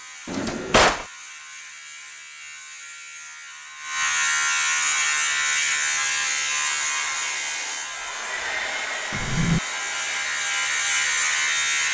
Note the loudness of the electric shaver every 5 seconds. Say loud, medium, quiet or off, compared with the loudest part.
medium, loud, loud.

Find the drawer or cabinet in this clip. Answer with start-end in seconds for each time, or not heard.
0.2-1.1, 9.1-9.6.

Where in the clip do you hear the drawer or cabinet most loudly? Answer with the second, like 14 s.
1 s.